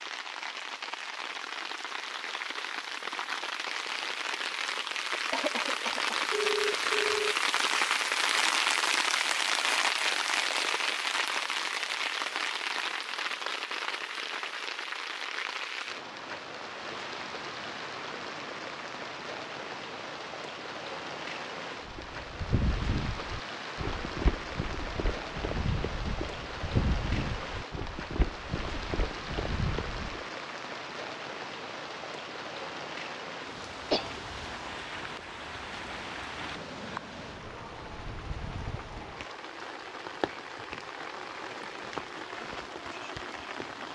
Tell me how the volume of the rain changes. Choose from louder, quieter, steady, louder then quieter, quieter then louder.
quieter.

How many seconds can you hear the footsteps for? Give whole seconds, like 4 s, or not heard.
8 s.